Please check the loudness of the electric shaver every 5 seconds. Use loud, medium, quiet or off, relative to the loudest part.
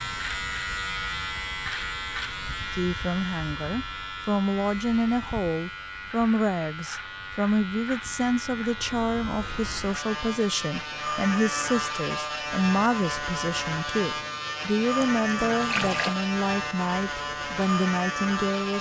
loud, medium, loud, loud.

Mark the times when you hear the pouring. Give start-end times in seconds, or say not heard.
15.0-16.2.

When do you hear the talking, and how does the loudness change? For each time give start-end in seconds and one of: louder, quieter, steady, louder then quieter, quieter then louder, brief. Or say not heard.
2.7-18.7 steady.